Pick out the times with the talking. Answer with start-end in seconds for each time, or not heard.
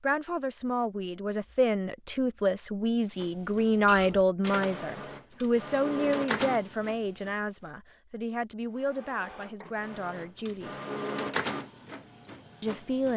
0.0-10.8, 12.6-13.1.